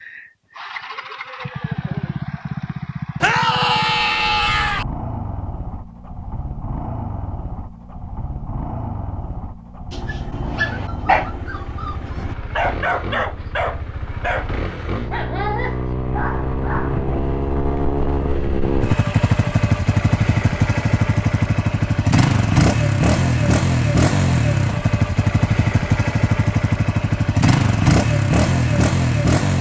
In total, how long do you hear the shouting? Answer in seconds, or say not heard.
2 s.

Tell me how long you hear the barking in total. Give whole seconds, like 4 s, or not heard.
7 s.